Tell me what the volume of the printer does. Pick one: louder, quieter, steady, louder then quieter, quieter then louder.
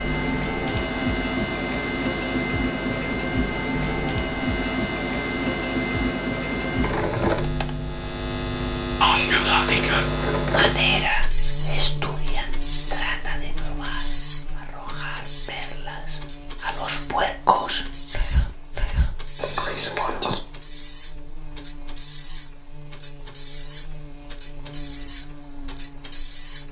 quieter.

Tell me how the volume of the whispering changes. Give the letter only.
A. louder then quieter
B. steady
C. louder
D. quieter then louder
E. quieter
D.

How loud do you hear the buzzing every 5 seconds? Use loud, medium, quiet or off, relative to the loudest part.
loud, loud, loud, quiet, quiet, quiet.